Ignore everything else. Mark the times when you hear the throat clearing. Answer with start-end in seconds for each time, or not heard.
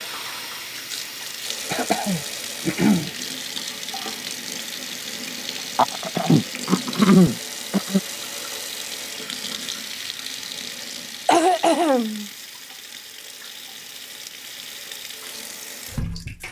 1.7-3.1, 5.8-8.0, 11.2-12.2.